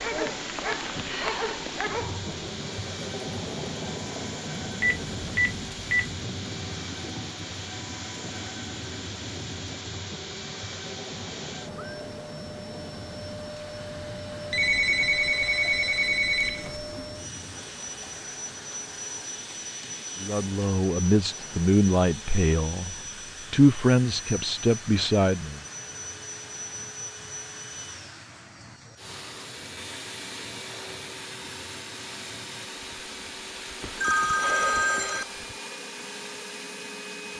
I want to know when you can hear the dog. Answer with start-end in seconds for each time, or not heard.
0.0-2.3.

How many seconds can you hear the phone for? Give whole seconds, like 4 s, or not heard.
5 s.